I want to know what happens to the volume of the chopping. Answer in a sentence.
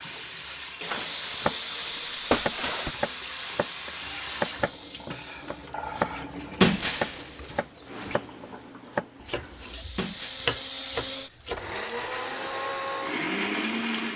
The loudness of the chopping goes down, then up.